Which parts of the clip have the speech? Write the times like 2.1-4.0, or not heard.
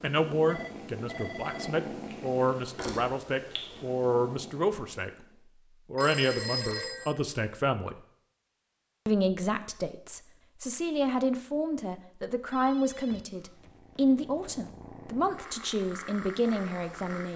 0.0-5.1, 5.9-8.0, 9.1-17.3.